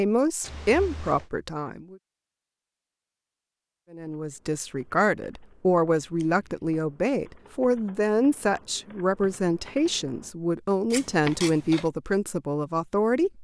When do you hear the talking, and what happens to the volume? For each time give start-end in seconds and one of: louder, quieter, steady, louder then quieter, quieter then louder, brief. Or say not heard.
0.0-1.9 brief
3.9-13.4 steady.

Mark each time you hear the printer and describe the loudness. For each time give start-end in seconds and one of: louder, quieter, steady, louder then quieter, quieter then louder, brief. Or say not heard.
not heard.